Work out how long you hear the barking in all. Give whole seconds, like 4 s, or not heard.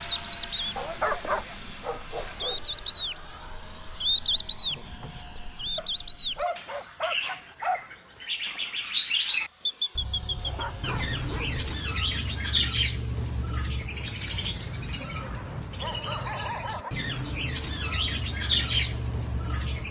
8 s.